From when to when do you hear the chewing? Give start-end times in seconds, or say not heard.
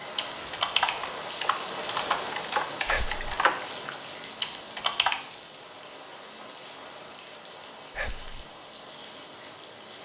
not heard.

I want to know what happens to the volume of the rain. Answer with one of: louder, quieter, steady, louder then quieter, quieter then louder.
quieter.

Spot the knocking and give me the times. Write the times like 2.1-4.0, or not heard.
not heard.